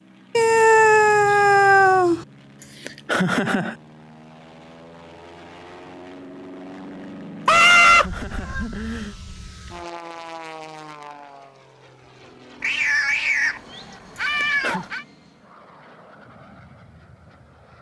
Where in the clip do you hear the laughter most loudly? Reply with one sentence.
The loudest moment of the laughter is at 3 seconds.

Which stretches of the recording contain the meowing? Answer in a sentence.
The meowing can be heard from 0.3 to 2.2 s, from 7.5 to 8.7 s and from 12.6 to 15.1 s.